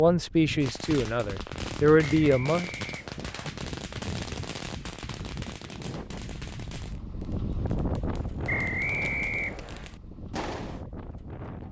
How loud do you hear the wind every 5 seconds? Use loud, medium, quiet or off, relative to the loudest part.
medium, loud, medium.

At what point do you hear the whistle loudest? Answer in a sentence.
The volume of the whistle peaks at 9 seconds.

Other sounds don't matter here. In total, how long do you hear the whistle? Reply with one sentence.
The whistle can be heard for 3 seconds in total.